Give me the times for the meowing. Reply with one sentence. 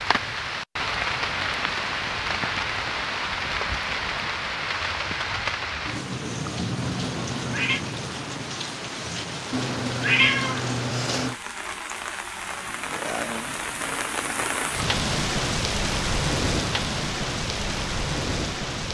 You can hear the meowing from 7.0 to 7.8 s and from 9.5 to 11.3 s.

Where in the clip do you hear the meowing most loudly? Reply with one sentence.
The volume of the meowing peaks at 10 seconds.